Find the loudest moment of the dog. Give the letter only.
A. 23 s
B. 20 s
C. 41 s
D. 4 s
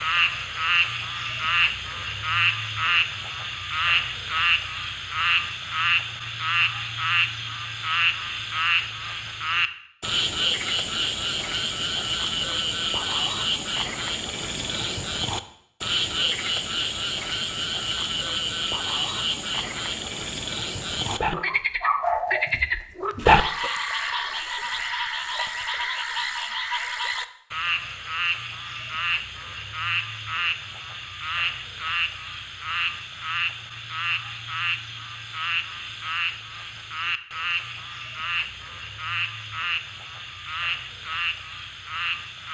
A.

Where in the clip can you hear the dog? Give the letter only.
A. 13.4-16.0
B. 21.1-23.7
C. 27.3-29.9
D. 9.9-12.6
B.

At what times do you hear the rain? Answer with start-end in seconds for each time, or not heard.
not heard.